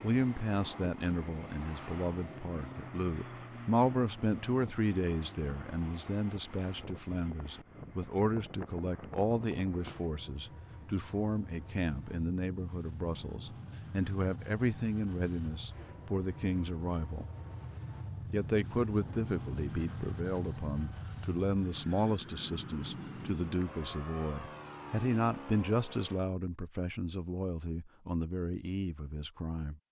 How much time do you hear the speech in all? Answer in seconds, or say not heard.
29 s.